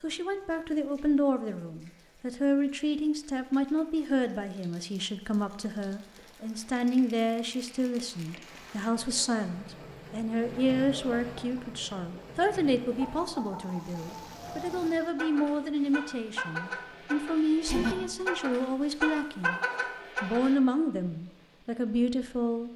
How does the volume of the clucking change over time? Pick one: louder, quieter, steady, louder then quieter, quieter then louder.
louder.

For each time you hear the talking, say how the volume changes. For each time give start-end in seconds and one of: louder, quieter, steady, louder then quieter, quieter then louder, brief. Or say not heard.
0.0-19.6 steady
20.2-22.7 brief.